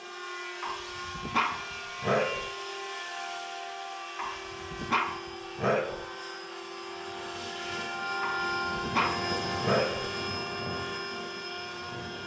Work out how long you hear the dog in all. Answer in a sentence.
You can hear the dog for 6 seconds altogether.